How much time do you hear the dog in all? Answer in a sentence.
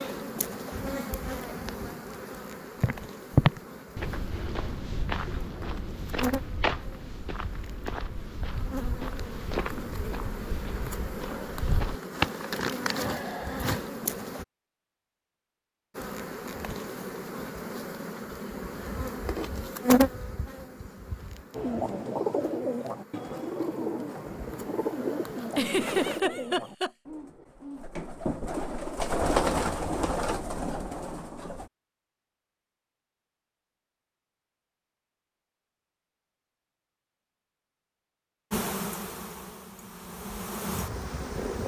The dog can't be heard in this clip.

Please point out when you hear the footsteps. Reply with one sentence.
The footsteps can be heard from 2.8 to 12.3 s.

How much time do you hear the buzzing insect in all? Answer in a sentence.
You can hear the buzzing insect for 28 seconds altogether.